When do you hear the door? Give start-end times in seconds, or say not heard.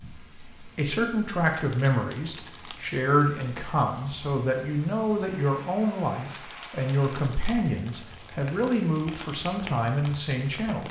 not heard.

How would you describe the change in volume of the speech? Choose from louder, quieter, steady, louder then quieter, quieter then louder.
steady.